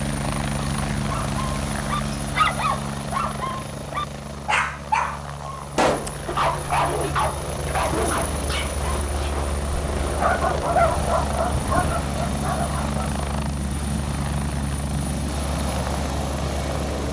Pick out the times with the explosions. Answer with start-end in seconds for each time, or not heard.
5.8-6.2.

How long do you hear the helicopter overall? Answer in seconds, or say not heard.
17 s.